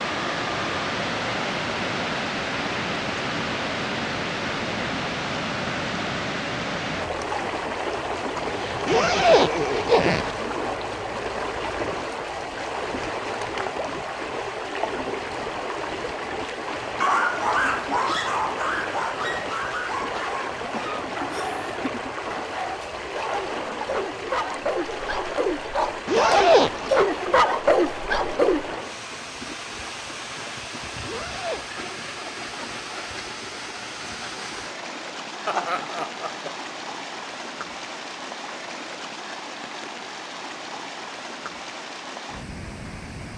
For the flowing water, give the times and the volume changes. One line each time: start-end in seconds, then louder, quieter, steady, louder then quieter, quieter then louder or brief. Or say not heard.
0.0-43.3 quieter.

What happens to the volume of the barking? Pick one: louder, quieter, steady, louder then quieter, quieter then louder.
quieter then louder.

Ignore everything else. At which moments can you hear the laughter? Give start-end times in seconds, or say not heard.
8.3-9.9, 21.3-22.1, 35.5-36.5.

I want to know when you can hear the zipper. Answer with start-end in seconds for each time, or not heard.
8.8-10.3, 26.1-27.1, 31.1-31.6.